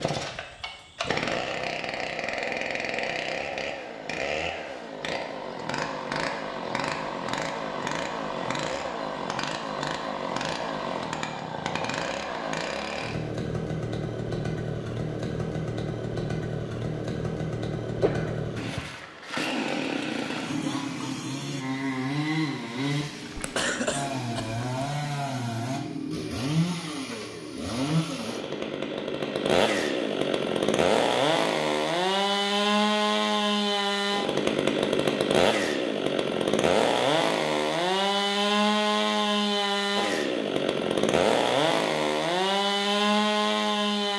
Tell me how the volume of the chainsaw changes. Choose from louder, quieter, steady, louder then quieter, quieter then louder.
louder.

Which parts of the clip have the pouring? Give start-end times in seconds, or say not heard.
not heard.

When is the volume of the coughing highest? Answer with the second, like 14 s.
24 s.